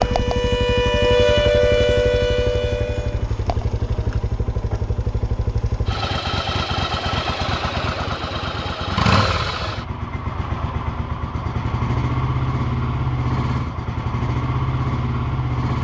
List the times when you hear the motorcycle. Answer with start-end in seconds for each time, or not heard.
0.0-15.8.